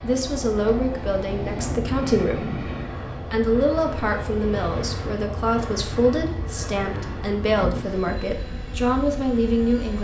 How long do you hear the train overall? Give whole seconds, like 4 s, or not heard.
10 s.